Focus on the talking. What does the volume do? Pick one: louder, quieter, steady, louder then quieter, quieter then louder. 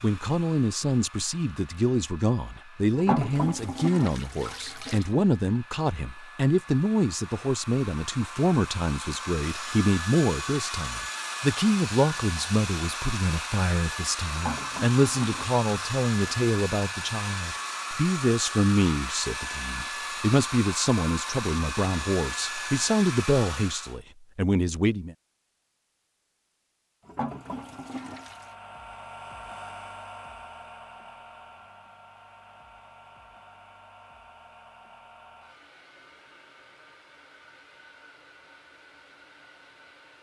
steady.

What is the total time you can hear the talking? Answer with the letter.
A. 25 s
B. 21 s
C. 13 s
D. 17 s
A.